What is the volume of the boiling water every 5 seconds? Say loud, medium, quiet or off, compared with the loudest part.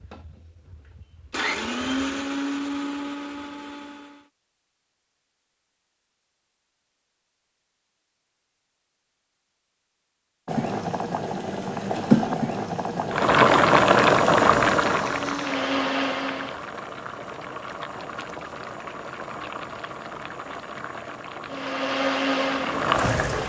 off, off, loud, quiet, medium.